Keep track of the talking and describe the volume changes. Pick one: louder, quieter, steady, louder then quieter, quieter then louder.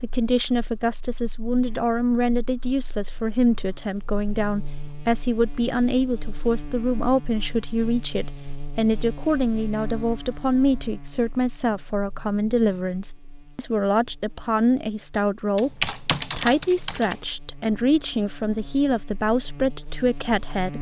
steady.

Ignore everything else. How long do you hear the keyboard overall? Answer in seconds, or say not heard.
2 s.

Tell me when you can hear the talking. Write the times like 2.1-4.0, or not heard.
0.0-20.7.